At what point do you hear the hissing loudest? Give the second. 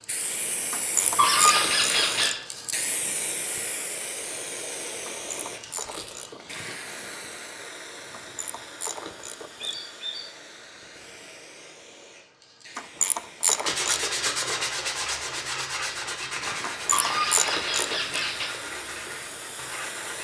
3 s.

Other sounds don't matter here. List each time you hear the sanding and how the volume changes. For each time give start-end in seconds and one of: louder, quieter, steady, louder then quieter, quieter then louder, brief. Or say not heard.
13.7-20.1 quieter.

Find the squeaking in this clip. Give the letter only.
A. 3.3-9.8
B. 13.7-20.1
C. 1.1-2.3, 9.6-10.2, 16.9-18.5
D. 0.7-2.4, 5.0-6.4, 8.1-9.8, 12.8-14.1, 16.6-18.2
C.